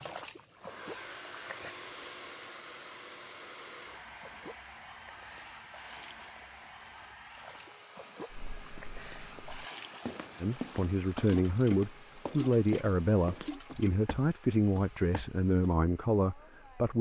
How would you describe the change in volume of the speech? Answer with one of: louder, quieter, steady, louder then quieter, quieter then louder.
steady.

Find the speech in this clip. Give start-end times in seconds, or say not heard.
10.4-16.9.